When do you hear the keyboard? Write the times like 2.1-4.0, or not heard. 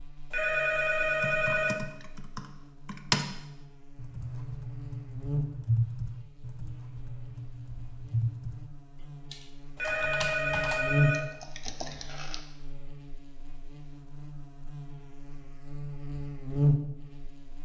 1.0-3.2, 4.0-12.4.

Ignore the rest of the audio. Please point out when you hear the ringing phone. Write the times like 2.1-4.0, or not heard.
0.3-1.8, 9.8-11.2.